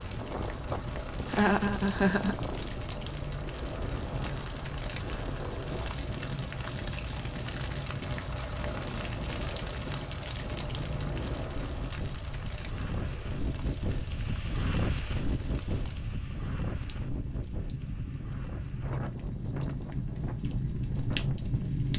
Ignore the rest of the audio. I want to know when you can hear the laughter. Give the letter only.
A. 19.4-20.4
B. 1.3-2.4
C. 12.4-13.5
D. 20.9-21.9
B.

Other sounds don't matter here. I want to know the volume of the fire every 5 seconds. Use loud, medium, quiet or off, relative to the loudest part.
medium, medium, medium, medium, loud.